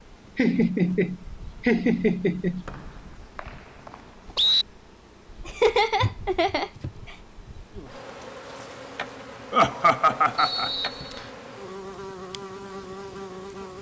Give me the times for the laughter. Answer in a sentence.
You can hear the laughter from 0.3 to 2.6 s, from 5.5 to 7.1 s and from 9.5 to 10.7 s.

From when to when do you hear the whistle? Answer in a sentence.
The whistle can be heard from 2.6 to 4.7 s and from 10.3 to 11.3 s.